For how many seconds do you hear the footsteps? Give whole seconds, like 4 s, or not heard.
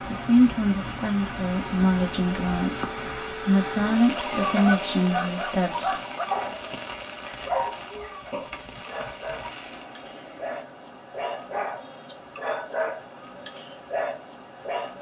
not heard.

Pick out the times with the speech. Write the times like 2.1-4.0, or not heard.
0.1-5.9.